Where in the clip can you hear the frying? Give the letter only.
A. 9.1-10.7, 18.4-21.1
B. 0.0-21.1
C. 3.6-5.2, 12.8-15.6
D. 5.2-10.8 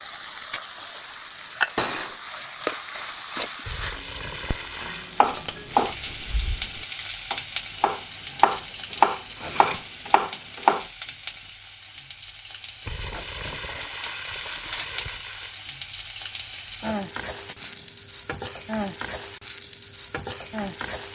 B.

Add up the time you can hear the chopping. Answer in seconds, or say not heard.
6 s.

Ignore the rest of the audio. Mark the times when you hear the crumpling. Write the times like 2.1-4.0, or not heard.
3.6-5.2, 12.8-15.6.